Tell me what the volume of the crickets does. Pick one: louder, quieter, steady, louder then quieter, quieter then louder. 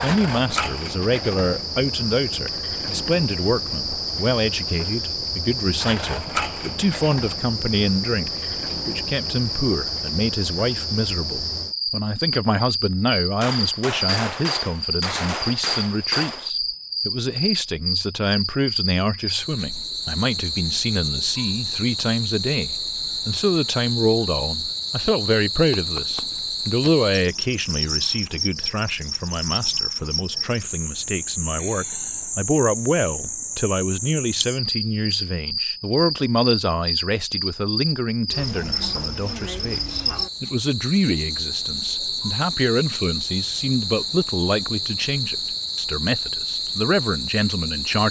steady.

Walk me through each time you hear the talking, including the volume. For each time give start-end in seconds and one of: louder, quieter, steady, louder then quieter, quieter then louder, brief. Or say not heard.
0.0-48.0 steady.